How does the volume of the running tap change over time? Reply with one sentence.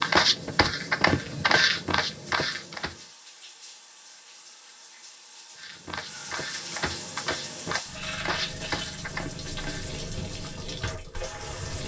The volume of the running tap goes up.